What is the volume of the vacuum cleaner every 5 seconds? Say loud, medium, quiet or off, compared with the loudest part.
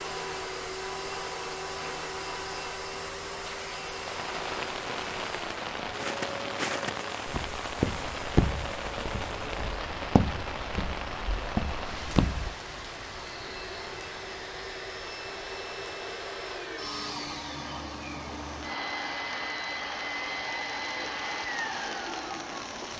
loud, medium, medium, loud, loud.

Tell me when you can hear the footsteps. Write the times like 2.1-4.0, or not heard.
6.0-12.6.